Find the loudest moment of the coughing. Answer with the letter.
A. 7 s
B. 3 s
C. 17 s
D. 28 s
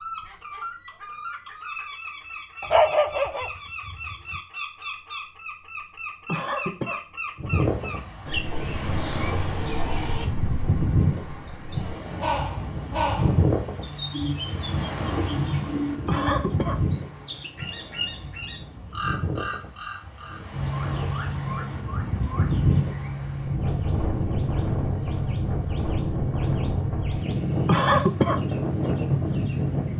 D.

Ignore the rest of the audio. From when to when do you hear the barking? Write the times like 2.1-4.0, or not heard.
2.6-4.4.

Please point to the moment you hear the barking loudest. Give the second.
3 s.